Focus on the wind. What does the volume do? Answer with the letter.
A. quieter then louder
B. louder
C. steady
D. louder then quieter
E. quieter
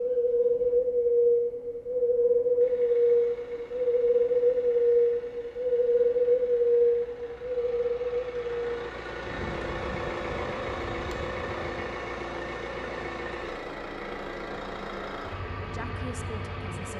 E.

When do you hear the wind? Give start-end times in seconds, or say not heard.
0.0-11.8.